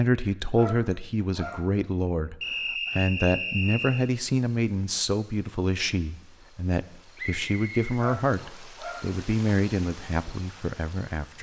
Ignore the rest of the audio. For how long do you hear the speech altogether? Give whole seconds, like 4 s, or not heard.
11 s.